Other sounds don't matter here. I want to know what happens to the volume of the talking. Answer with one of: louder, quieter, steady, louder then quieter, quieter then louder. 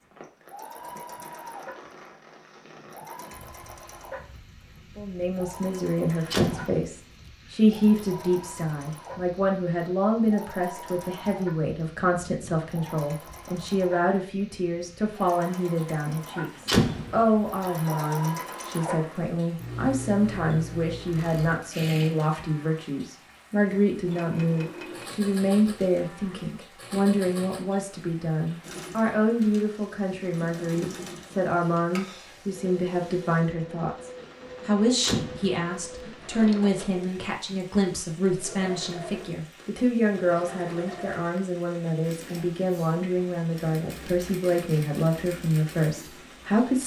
steady.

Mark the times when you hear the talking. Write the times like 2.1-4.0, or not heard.
5.0-46.8.